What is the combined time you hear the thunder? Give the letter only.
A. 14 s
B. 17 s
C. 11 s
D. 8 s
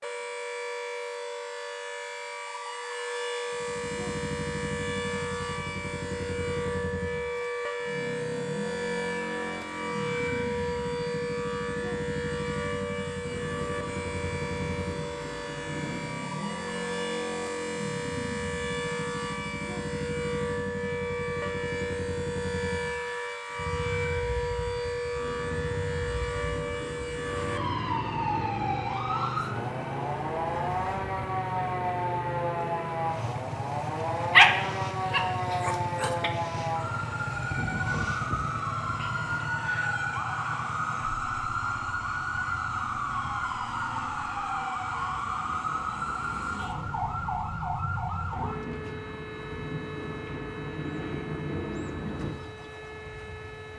C.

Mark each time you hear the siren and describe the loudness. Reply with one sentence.
The siren can be heard from 0.0 to 53.7 s, at a steady volume.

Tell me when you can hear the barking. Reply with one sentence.
You can hear the barking from 34.3 to 36.3 s.